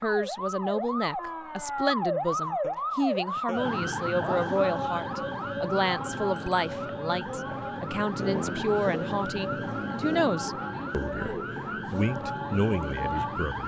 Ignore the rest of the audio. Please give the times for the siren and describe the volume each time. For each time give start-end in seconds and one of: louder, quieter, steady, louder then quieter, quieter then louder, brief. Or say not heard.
0.0-13.6 steady.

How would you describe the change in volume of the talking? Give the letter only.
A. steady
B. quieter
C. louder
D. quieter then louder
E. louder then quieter
A.